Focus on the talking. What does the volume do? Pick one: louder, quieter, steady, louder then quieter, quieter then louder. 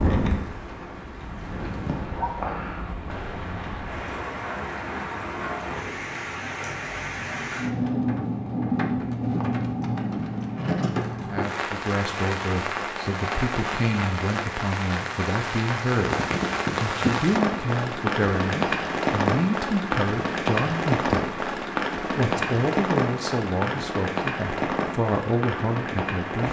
steady.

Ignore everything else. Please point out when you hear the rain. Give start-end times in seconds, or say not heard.
0.0-26.4.